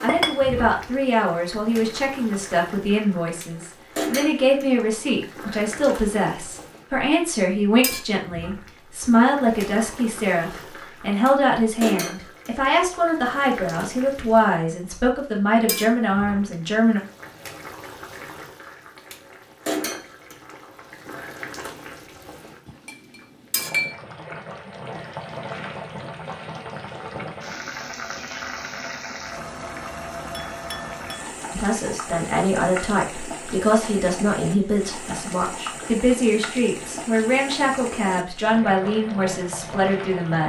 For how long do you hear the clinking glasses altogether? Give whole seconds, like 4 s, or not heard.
3 s.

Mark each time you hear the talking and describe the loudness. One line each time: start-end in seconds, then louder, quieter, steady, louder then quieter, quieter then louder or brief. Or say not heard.
0.0-17.0 steady
31.5-40.4 steady.